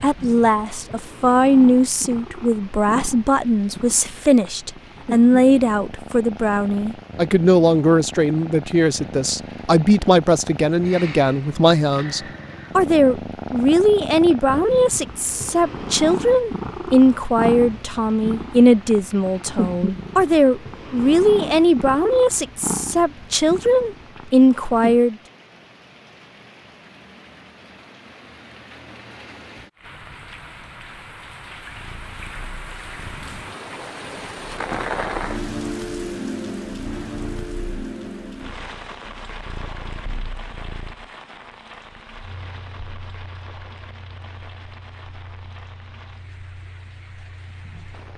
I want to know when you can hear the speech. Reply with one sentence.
You can hear the speech from 0.0 to 25.1 s.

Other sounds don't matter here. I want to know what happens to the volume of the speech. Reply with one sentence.
The volume of the speech stays about the same.